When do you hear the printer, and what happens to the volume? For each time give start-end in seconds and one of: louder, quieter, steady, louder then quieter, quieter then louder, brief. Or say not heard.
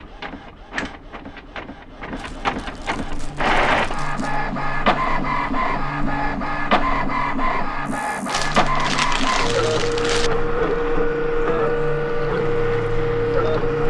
0.0-13.8 louder.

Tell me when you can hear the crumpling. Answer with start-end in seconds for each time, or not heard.
2.1-4.4, 8.2-10.3.